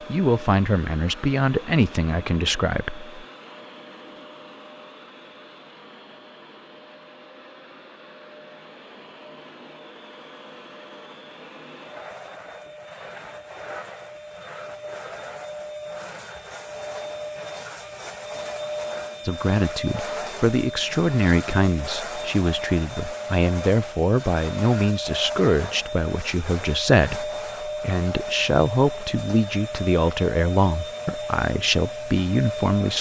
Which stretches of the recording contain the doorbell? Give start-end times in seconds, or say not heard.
not heard.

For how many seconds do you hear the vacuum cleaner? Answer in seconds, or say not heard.
33 s.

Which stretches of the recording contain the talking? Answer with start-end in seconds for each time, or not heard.
0.1-3.2, 19.2-32.9.